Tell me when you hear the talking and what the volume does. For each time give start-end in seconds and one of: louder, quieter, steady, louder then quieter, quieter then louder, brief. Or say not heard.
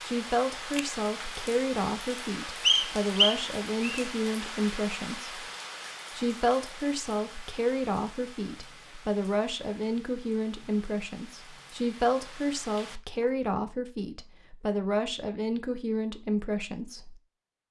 0.0-5.5 steady
6.1-17.6 steady.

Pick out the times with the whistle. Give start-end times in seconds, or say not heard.
2.6-4.0.